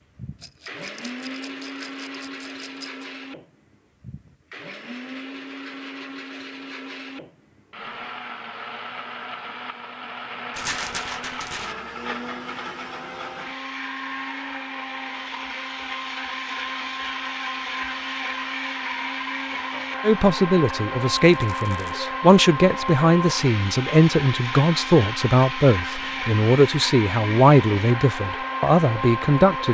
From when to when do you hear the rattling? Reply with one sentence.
You can hear the rattling from 0.4 to 3.1 s, from 10.5 to 11.8 s and from 21.3 to 22.0 s.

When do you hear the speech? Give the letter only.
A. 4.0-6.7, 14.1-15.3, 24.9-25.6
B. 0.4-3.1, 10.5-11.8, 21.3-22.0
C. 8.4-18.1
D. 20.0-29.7
D.